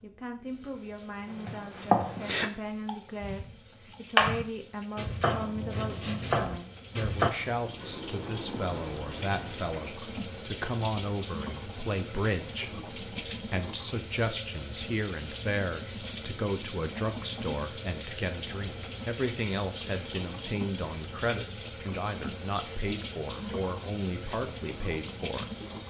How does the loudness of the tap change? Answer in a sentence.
The loudness of the tap goes up.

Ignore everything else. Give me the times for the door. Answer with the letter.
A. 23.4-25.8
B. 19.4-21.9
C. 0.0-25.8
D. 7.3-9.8
D.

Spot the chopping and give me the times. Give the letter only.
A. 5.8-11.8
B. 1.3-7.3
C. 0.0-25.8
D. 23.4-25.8
B.